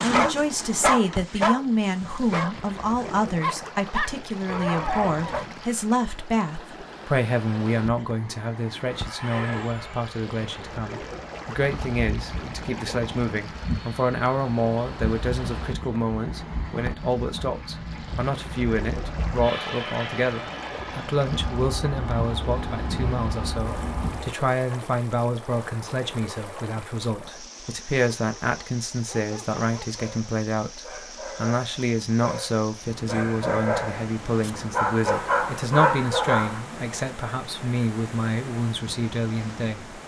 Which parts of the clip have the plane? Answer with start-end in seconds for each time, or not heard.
8.8-24.4.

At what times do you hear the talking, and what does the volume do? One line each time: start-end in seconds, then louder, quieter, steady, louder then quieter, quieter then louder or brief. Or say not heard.
0.0-40.0 steady.